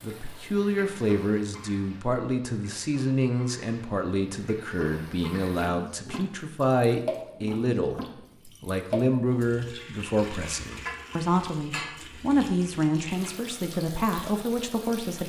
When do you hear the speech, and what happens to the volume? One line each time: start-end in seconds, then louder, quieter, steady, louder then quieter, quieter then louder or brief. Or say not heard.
0.0-15.2 steady.